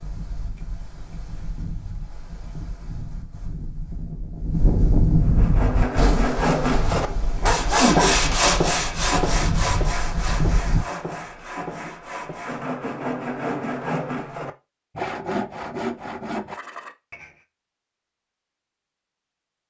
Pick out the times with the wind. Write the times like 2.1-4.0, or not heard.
0.0-10.8.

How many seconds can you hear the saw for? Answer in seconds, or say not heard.
12 s.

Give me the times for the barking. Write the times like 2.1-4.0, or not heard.
7.0-8.4.